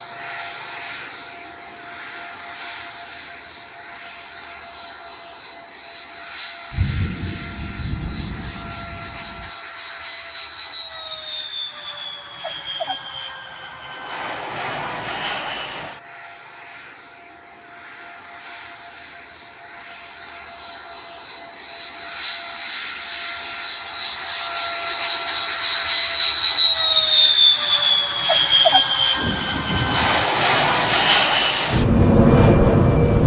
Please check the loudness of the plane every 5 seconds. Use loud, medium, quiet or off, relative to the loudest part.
quiet, quiet, quiet, quiet, medium, loud, loud.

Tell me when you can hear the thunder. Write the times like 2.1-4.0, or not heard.
6.7-9.5, 28.9-30.2.